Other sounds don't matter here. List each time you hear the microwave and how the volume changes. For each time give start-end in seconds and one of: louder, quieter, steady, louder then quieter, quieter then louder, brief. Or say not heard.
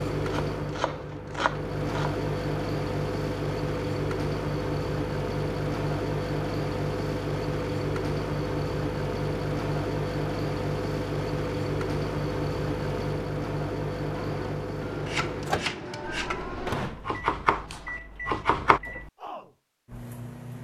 0.0-20.6 quieter.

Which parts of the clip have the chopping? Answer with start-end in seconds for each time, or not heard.
0.1-2.2, 14.2-18.8.